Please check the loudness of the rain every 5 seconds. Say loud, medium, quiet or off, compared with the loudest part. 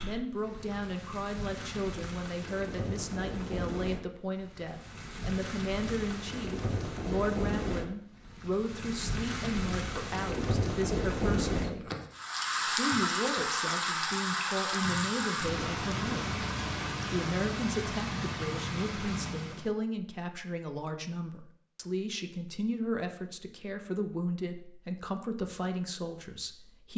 medium, medium, loud, loud, off, off.